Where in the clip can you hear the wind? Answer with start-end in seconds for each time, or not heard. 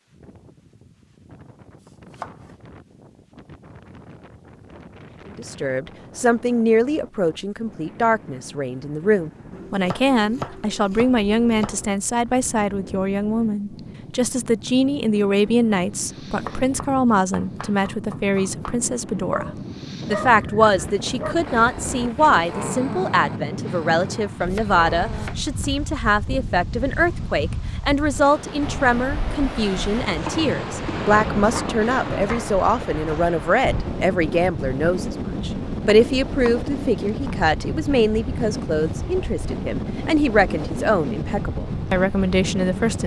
0.0-43.0.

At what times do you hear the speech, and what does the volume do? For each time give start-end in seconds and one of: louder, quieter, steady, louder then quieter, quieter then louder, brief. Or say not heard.
5.3-19.4 steady
20.1-43.0 steady.